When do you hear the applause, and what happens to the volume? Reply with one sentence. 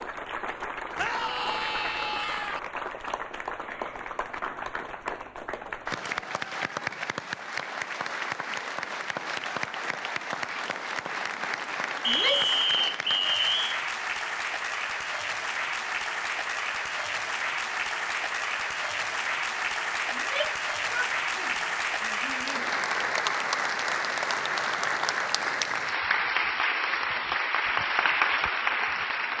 The applause can be heard from 0.0 to 29.3 s, getting louder.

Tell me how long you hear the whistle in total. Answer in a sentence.
The whistle can be heard for 2 seconds in total.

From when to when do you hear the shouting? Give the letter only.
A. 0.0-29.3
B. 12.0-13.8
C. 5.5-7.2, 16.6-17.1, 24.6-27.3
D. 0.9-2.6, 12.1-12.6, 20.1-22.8
D.